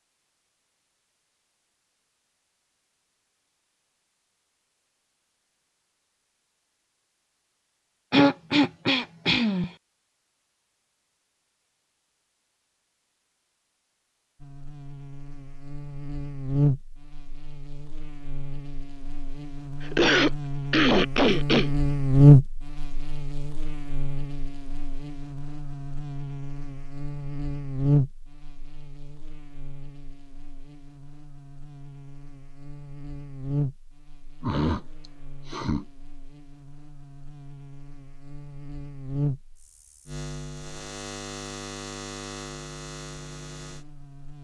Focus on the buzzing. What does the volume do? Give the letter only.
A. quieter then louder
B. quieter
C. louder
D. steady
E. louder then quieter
E.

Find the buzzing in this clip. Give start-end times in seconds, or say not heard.
14.4-44.3.